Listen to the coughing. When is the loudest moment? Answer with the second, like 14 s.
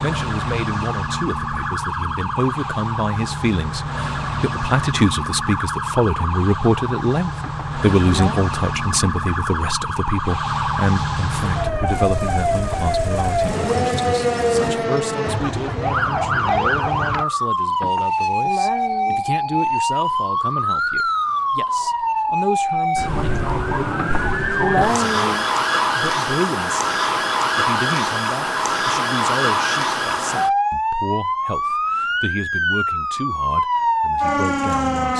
25 s.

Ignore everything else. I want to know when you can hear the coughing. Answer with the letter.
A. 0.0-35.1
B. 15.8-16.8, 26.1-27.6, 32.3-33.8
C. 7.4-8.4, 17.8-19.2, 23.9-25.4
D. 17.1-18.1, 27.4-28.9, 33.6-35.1
C.